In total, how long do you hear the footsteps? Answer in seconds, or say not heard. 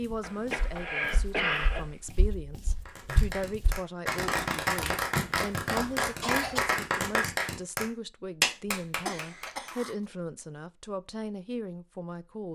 4 s.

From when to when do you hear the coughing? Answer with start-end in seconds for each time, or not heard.
0.2-1.9, 4.8-6.6, 9.1-9.9.